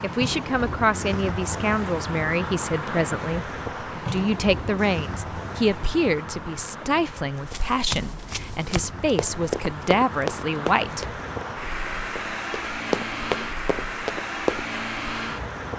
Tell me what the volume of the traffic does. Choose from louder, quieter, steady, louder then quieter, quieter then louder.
quieter then louder.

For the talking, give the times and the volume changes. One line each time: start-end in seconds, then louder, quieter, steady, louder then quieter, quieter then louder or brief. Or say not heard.
0.0-11.2 steady.